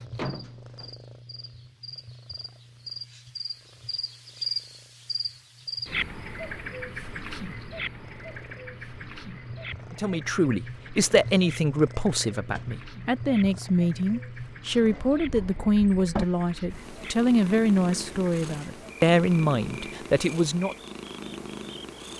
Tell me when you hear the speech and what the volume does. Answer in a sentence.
The speech can be heard from 9.9 to 20.8 s, at a steady volume.